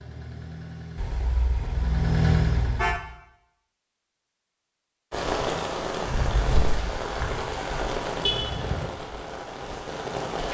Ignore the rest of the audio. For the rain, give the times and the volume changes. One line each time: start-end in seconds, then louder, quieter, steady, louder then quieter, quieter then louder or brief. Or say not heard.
5.1-10.4 quieter.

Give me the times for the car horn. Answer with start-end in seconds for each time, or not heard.
0.9-3.0, 8.2-8.9.